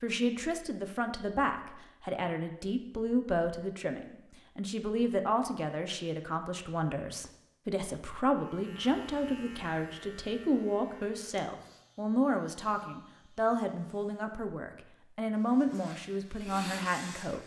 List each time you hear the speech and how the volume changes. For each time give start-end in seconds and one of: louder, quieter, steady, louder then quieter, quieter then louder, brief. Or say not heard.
0.0-17.4 steady.